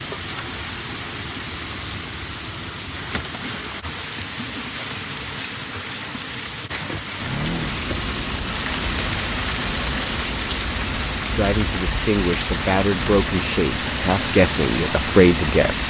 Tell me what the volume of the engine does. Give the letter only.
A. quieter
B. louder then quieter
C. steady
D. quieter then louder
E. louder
C.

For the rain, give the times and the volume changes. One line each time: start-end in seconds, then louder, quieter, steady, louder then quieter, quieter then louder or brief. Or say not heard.
0.0-15.8 steady.